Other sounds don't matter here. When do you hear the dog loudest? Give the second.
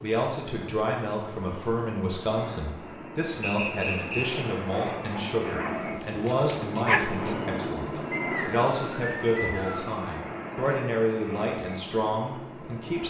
7 s.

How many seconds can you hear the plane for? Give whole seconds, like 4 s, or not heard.
13 s.